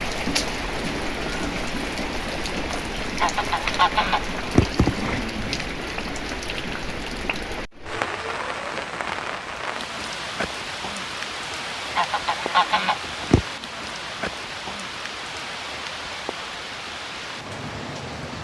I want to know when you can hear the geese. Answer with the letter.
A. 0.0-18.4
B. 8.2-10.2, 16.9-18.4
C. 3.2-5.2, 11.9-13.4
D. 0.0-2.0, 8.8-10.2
C.